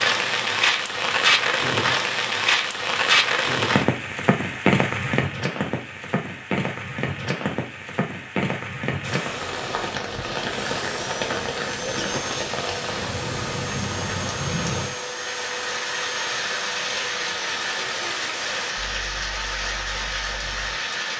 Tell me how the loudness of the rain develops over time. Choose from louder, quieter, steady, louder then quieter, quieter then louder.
quieter.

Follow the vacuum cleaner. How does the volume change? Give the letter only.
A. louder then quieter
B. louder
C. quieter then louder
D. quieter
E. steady
E.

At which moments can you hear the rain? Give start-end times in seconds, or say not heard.
0.0-21.1.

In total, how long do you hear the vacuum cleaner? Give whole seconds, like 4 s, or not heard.
10 s.